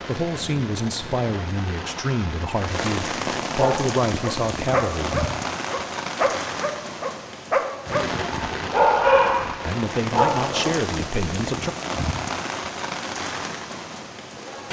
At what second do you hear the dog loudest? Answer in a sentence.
The volume of the dog peaks at 9 seconds.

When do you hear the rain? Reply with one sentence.
You can hear the rain from 0.0 to 14.6 s.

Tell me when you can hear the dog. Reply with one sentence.
You can hear the dog from 3.5 to 10.8 s.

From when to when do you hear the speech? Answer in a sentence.
You can hear the speech from 0.1 to 5.2 s and from 9.7 to 11.7 s.